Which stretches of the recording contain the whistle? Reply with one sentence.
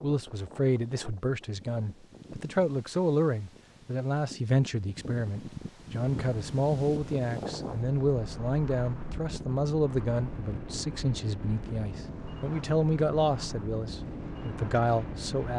The whistle can't be heard in this clip.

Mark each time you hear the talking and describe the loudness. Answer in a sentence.
The talking can be heard from 0.0 to 15.5 s, at a steady volume.